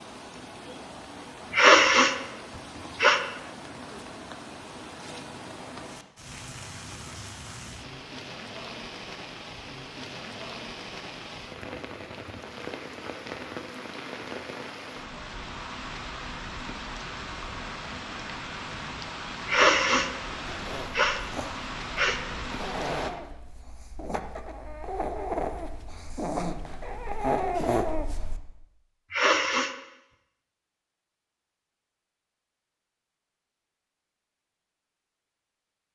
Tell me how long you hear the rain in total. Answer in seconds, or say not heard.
23 s.